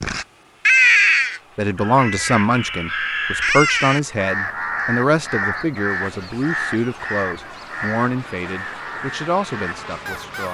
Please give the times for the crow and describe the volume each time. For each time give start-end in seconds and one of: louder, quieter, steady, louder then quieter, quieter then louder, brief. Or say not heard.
0.0-10.4 quieter.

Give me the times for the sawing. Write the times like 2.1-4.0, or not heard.
not heard.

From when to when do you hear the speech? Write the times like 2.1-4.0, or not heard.
1.6-10.4.